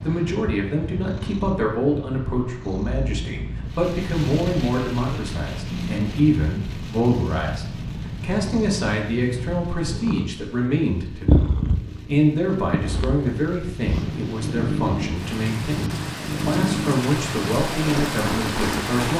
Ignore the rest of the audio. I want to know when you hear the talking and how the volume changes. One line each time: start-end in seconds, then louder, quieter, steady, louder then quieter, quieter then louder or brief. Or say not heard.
0.0-19.1 steady.